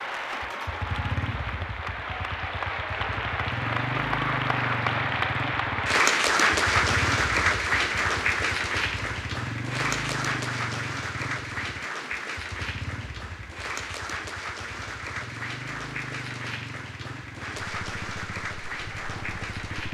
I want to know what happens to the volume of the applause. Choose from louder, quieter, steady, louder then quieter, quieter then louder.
louder then quieter.